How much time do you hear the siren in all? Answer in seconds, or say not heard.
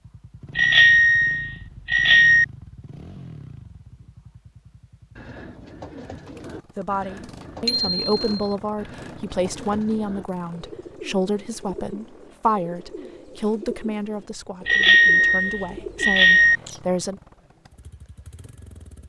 not heard.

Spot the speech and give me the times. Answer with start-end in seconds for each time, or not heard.
6.8-17.2.